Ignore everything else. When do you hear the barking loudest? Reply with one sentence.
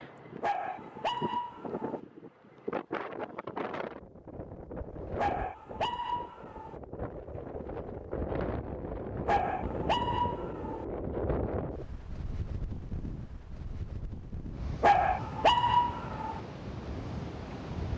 The loudest moment of the barking is at 16 seconds.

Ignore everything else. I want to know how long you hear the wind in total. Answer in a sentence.
You can hear the wind for 18 seconds altogether.